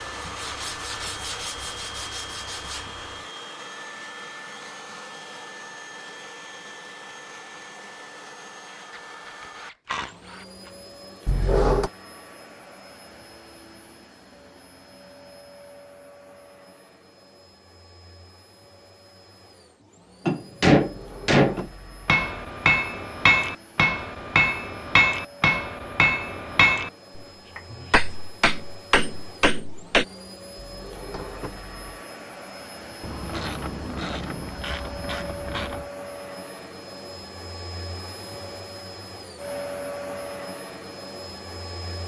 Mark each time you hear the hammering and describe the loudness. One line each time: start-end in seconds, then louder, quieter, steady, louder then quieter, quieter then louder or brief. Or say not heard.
20.2-30.1 quieter.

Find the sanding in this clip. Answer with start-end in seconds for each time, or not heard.
0.0-3.3.